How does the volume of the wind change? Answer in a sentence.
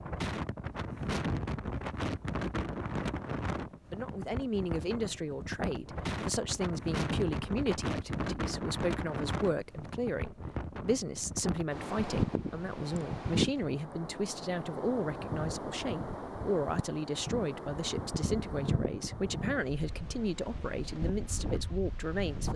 The loudness of the wind stays about the same.